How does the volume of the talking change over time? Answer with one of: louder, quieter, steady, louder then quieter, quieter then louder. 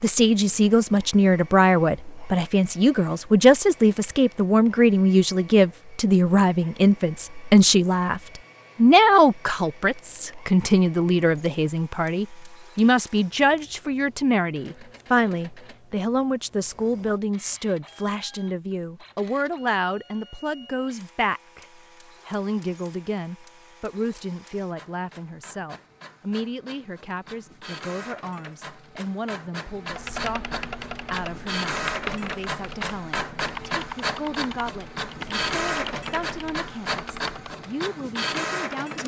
quieter.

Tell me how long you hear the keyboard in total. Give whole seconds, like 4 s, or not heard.
8 s.